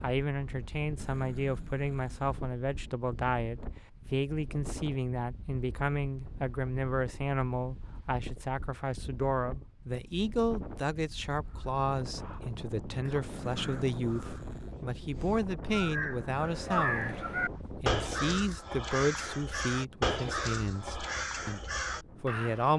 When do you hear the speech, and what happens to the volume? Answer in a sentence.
You can hear the speech from 0.0 to 22.7 s, at a steady volume.